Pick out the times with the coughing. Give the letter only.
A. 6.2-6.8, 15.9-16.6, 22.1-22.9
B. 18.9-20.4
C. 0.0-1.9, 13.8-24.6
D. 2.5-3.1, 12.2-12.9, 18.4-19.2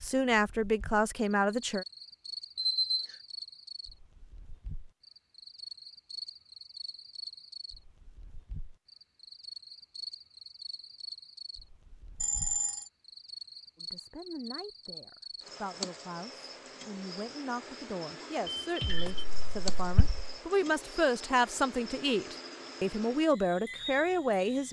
B.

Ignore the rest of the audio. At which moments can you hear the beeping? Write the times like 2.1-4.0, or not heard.
2.5-3.1, 12.2-12.9, 18.4-19.2.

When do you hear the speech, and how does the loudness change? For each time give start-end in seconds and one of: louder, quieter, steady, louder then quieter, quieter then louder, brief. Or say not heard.
0.0-1.9 brief
13.8-24.6 louder.